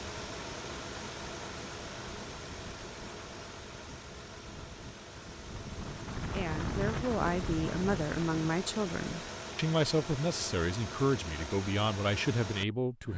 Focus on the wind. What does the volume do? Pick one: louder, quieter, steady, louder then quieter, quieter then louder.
louder.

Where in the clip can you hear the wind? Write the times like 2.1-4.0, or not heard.
0.1-8.6.